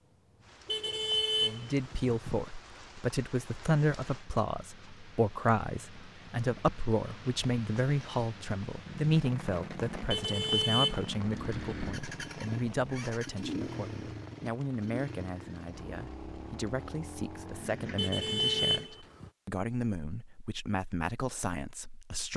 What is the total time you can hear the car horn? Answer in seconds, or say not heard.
5 s.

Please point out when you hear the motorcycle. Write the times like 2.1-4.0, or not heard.
8.8-18.9.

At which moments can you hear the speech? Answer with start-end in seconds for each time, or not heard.
1.4-22.3.